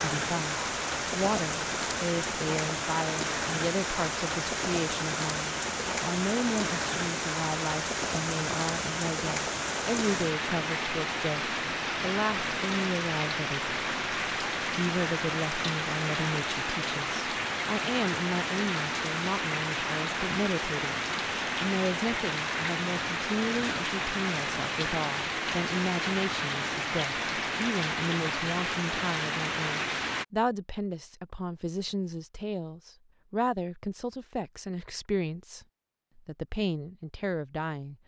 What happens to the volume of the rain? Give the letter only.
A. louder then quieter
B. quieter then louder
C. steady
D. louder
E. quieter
C.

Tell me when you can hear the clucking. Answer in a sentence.
You can't hear the clucking here.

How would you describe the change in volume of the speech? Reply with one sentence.
The loudness of the speech stays about the same.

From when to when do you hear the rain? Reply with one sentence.
You can hear the rain from 0.0 to 30.2 s.